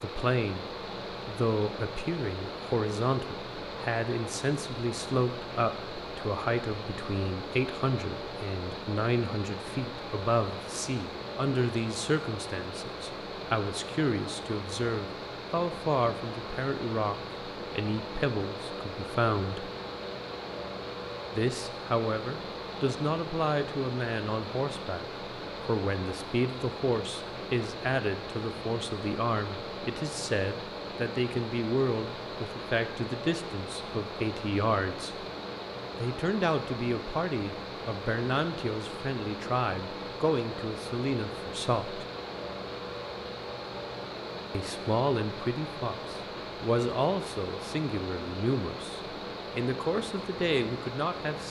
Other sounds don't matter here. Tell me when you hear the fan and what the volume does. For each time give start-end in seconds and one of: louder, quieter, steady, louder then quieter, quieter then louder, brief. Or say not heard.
0.0-51.4 steady.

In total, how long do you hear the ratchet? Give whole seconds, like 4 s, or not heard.
not heard.